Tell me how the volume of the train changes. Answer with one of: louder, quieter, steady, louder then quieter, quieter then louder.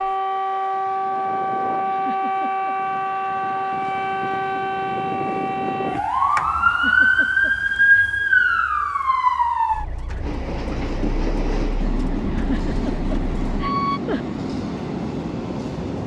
steady.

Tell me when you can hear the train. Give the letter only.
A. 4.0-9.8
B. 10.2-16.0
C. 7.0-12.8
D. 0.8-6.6
B.